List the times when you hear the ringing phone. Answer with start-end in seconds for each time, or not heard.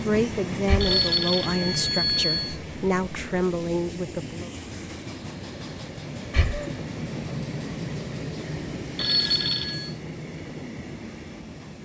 0.8-2.5, 8.9-9.9.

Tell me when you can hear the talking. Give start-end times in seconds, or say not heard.
0.0-4.5.